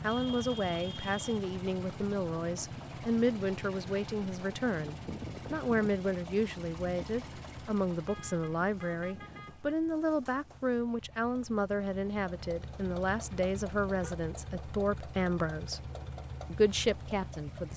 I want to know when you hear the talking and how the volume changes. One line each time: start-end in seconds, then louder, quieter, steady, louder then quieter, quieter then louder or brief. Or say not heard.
0.0-15.8 steady
16.5-17.7 brief.